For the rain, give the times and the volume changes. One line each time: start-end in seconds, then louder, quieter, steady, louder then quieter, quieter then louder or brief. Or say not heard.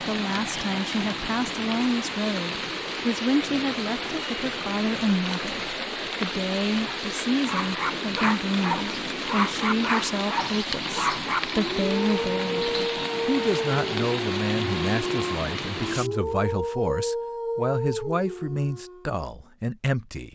0.0-16.1 steady.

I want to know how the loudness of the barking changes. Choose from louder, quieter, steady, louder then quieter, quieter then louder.
steady.